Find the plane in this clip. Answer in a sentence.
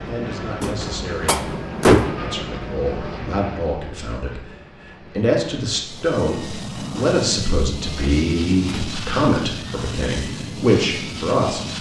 The plane can be heard from 0.0 to 11.7 s.